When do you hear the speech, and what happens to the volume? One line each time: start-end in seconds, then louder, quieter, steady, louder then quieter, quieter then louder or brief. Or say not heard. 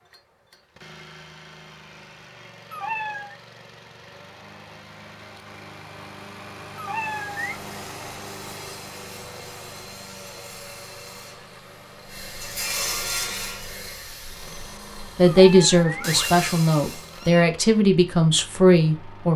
15.2-19.3 steady.